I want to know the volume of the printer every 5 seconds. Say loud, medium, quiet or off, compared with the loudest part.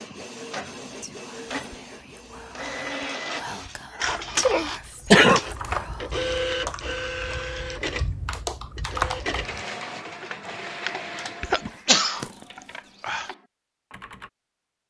loud, loud, medium.